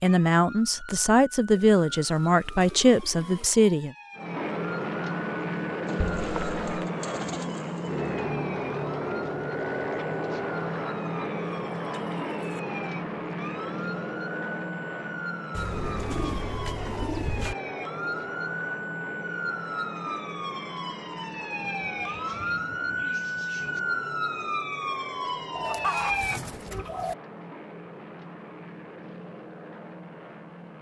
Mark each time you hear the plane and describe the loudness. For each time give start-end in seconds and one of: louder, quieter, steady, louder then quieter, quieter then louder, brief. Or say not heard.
4.2-30.7 quieter.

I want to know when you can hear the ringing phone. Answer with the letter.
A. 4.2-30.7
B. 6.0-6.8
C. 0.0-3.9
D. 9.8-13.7
B.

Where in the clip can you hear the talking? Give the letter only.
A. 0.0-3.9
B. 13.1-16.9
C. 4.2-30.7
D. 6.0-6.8
A.